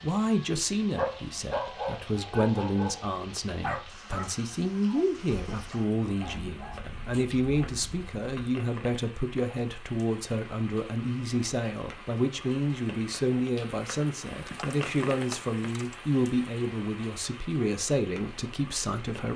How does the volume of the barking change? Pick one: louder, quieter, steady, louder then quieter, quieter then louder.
quieter.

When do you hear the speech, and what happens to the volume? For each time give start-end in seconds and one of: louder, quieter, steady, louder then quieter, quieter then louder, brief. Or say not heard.
0.0-19.3 steady.